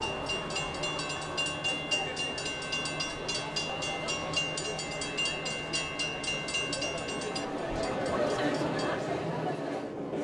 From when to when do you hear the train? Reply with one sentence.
You can hear the train from 0.0 to 10.1 s.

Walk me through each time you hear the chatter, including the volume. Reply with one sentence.
You can hear the chatter from 0.0 to 10.1 s, getting louder.